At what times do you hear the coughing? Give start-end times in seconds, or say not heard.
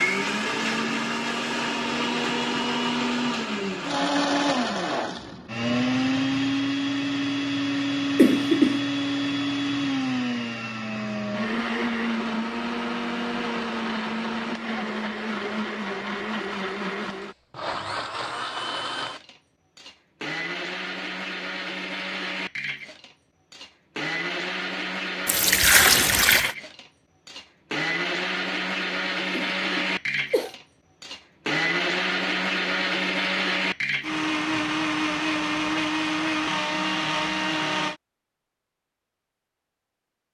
8.2-8.8, 29.3-30.6.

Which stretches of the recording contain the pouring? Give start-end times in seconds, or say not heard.
25.2-26.6.